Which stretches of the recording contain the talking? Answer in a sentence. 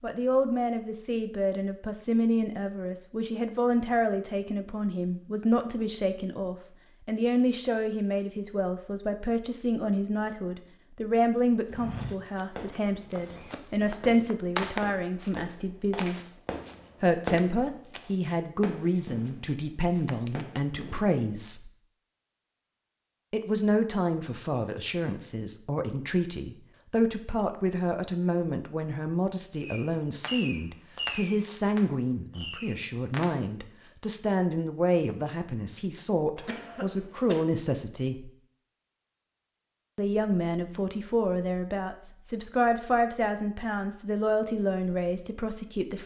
The talking can be heard from 0.0 to 16.4 s, from 17.0 to 21.7 s, from 23.3 to 38.3 s and from 40.0 to 46.0 s.